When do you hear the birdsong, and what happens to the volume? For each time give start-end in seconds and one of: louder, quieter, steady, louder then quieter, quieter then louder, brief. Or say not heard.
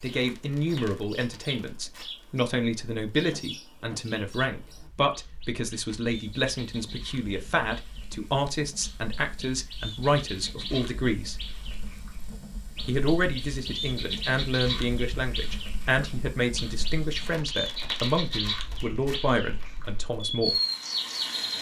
0.0-21.5 louder.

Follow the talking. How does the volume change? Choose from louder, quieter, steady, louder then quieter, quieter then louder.
steady.